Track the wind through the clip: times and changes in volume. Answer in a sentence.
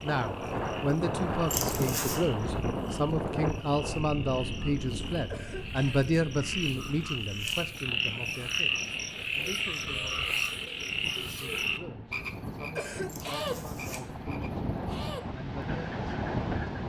The wind can be heard from 0.0 to 16.8 s, getting quieter then louder.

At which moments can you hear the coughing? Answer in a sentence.
You can hear the coughing from 5.2 to 6.1 s and from 12.8 to 13.5 s.